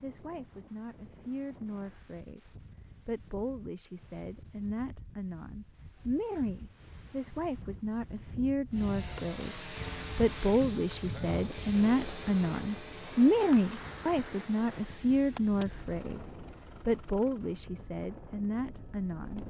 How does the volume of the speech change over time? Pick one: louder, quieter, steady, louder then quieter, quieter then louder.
louder then quieter.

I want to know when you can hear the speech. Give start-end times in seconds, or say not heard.
0.0-19.4.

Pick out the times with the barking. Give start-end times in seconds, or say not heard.
not heard.